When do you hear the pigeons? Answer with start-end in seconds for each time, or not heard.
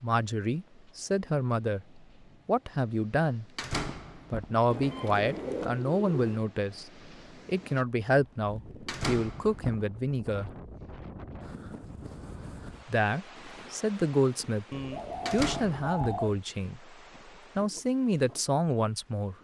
4.7-6.4, 14.7-16.4.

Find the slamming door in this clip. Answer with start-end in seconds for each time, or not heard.
3.5-4.5, 8.8-9.8, 15.2-16.2.